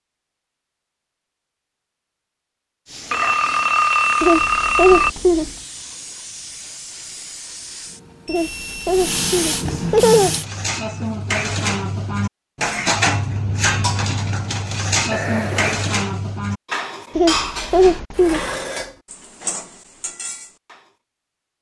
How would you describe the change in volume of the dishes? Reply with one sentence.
The loudness of the dishes goes down.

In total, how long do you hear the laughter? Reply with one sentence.
You can hear the laughter for 5 seconds altogether.